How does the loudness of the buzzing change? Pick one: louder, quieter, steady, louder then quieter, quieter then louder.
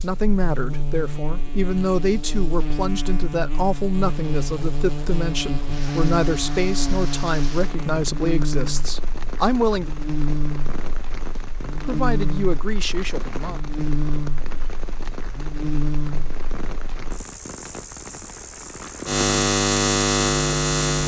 louder.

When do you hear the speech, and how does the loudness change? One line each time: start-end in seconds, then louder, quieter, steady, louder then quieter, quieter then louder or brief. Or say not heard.
0.0-9.9 steady
11.8-13.6 brief.